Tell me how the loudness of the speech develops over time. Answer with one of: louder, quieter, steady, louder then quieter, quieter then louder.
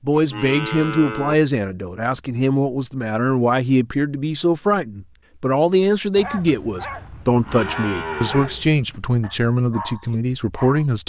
steady.